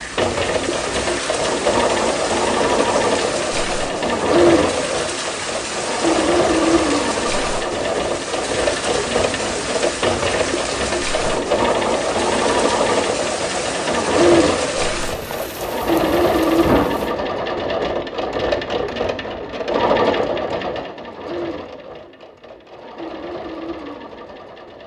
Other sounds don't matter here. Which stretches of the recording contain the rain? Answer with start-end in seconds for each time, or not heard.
0.0-17.1.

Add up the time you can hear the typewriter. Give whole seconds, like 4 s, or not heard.
not heard.